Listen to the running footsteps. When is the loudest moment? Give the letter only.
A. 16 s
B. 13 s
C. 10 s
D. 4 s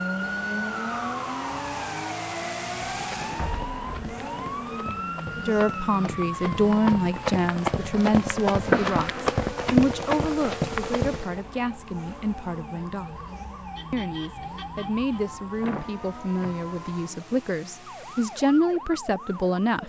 C.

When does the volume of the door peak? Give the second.
9 s.